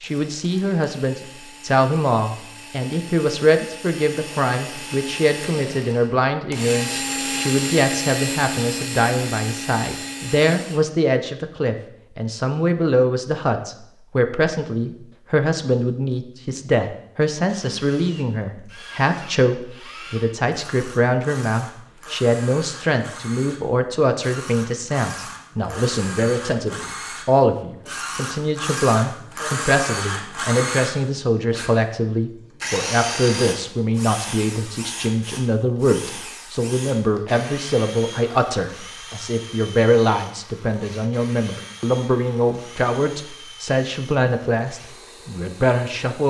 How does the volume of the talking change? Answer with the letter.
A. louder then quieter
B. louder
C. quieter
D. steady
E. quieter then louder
D.